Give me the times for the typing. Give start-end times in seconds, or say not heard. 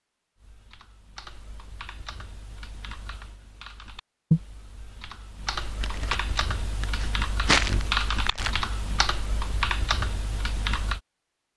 0.4-11.0.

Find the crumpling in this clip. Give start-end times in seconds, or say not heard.
5.8-8.6.